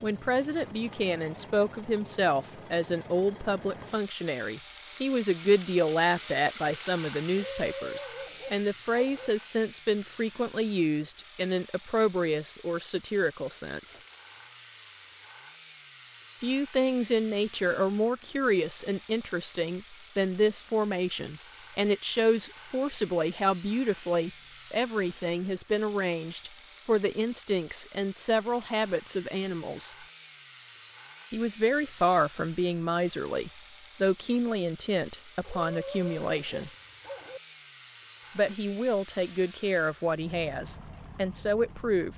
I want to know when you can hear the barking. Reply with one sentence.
You can hear the barking from 7.3 to 9.3 s and from 35.4 to 37.4 s.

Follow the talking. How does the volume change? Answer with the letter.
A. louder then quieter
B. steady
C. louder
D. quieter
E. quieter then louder
B.